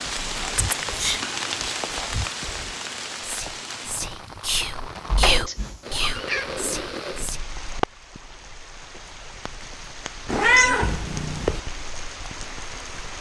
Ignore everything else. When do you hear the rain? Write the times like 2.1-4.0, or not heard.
0.0-13.1.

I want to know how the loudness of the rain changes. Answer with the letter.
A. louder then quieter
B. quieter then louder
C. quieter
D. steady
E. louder
C.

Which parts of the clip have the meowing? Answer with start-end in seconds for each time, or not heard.
0.1-0.8, 5.1-6.5, 10.2-11.6.